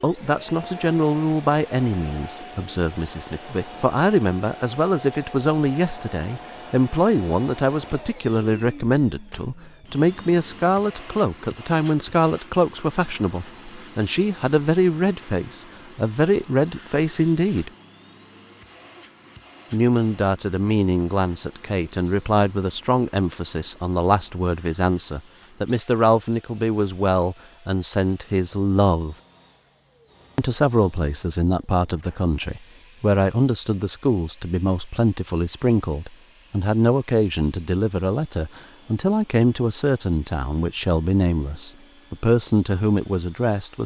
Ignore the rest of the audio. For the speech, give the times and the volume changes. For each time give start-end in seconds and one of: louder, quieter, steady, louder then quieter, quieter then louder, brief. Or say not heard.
0.0-17.7 steady
19.7-29.1 steady
30.4-43.8 steady.